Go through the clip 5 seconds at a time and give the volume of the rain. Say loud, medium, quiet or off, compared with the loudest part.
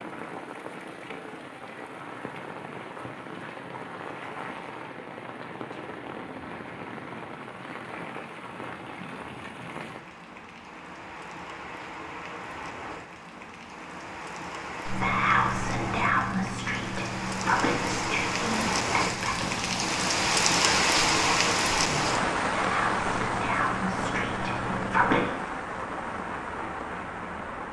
quiet, quiet, quiet, medium, loud, medium.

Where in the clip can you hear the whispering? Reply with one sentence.
You can hear the whispering from 14.8 to 25.2 s.